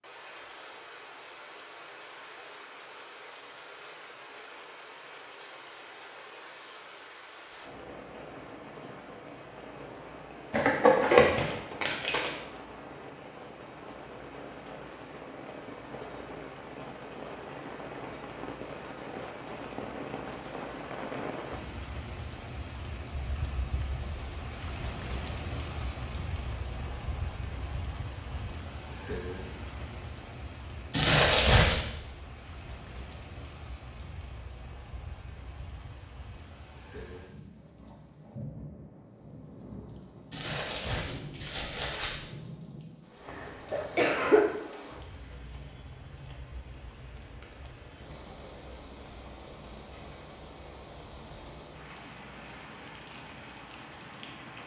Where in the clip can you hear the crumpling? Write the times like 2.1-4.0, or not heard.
10.5-12.3, 30.9-31.8, 40.3-42.1.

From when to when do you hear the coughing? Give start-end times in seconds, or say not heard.
43.2-44.5.